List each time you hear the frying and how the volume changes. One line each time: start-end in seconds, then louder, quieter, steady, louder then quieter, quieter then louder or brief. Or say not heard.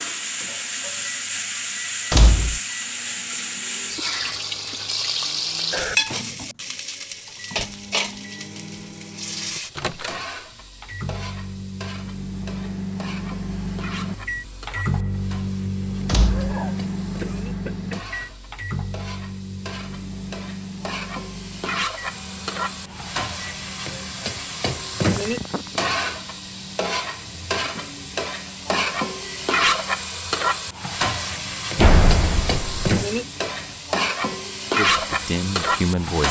0.0-36.2 quieter then louder.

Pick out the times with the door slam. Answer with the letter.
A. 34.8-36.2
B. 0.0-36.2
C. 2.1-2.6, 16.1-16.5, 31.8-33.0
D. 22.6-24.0
C.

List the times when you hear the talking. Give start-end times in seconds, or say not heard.
34.8-36.2.